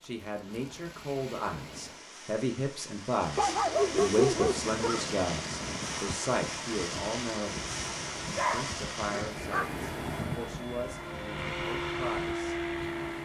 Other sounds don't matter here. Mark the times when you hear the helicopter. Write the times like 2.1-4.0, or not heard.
4.3-13.2.